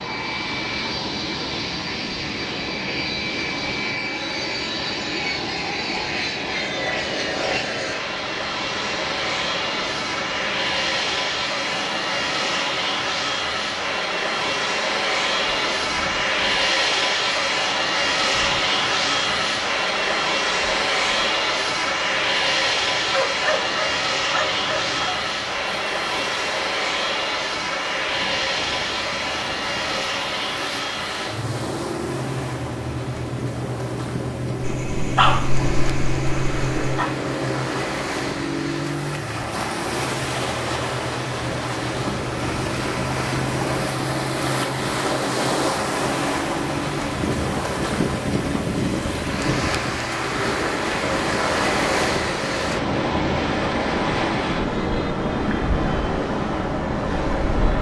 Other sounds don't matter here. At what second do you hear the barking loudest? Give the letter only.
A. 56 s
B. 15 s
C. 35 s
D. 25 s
C.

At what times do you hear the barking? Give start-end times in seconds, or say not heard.
23.1-25.1, 34.6-37.1.